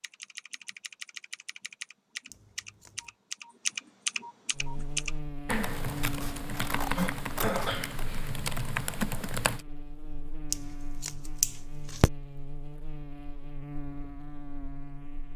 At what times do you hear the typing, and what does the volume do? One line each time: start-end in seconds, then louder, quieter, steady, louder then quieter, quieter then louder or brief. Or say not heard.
0.0-9.6 louder.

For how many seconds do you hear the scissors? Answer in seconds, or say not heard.
5 s.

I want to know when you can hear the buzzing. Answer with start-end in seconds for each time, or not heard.
4.5-15.3.